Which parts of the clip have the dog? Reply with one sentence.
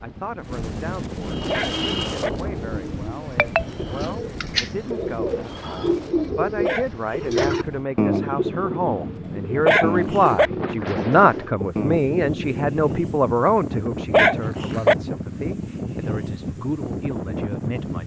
The dog can be heard from 1.4 to 2.3 s, from 6.6 to 7.5 s, from 9.7 to 10.5 s and from 14.1 to 14.9 s.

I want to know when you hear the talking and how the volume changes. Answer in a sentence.
The talking can be heard from 0.0 to 18.0 s, getting louder then quieter.